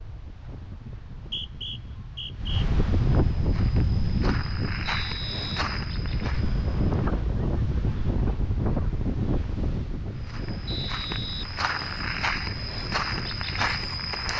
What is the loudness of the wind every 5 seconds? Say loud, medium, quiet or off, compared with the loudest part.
loud, loud, medium.